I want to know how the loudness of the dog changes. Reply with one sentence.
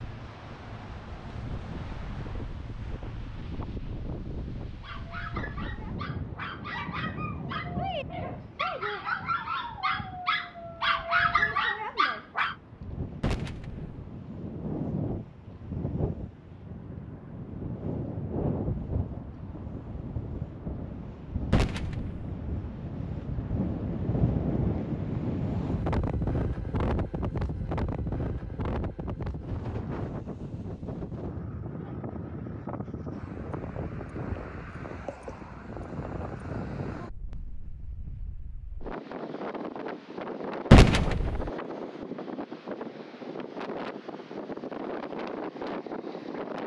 The volume of the dog goes up.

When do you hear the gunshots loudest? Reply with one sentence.
The volume of the gunshots peaks at 41 seconds.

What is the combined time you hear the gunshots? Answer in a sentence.
You can hear the gunshots for 2 seconds altogether.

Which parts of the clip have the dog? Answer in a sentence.
You can hear the dog from 4.8 to 12.6 s.